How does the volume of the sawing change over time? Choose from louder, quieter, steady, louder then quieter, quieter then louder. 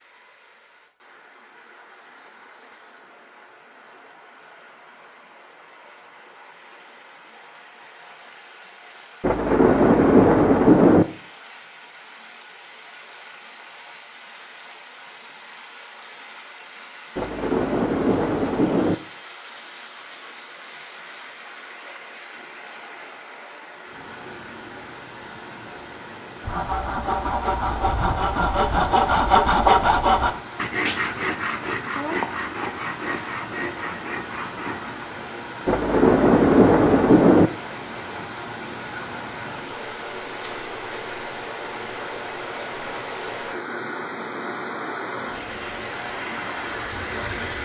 louder then quieter.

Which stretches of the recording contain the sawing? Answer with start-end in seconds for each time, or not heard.
26.4-35.0.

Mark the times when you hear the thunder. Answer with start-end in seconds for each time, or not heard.
9.2-11.1, 17.1-18.9, 35.6-37.5.